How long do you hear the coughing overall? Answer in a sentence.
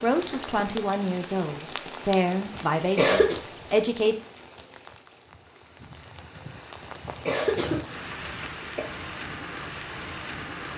You can hear the coughing for 3 seconds altogether.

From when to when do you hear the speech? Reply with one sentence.
The speech can be heard from 0.0 to 4.2 s.